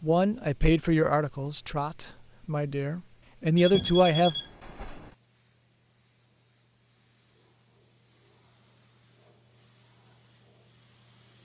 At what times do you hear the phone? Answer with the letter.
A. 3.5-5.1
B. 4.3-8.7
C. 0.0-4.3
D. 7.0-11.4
A.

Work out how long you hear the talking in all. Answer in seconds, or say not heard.
4 s.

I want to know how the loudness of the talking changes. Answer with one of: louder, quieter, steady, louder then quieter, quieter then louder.
quieter then louder.